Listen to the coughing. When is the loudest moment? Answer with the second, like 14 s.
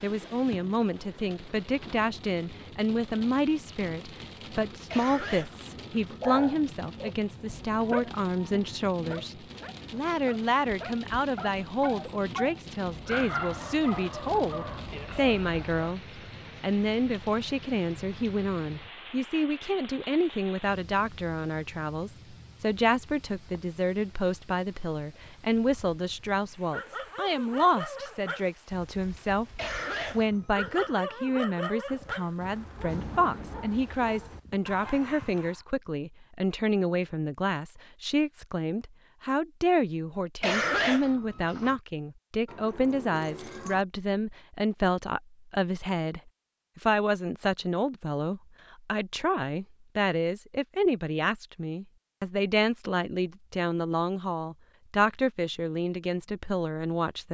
41 s.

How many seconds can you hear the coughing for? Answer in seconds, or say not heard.
4 s.